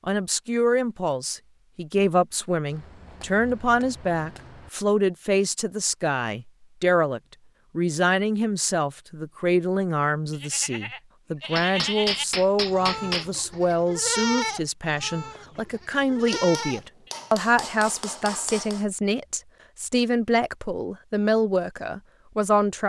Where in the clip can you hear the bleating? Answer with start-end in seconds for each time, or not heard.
10.3-17.2.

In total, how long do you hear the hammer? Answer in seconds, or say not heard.
6 s.